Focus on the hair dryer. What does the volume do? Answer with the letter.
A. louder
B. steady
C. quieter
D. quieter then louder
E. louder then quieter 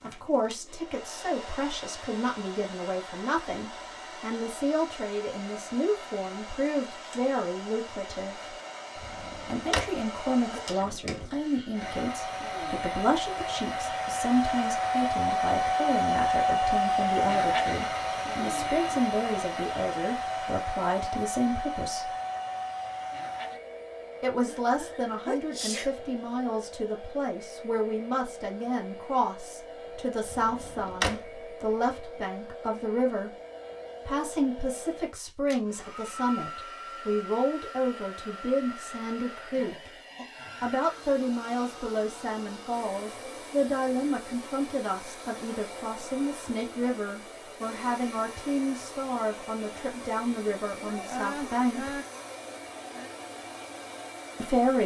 E.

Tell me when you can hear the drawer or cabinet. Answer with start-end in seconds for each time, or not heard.
8.9-10.1, 30.2-31.5.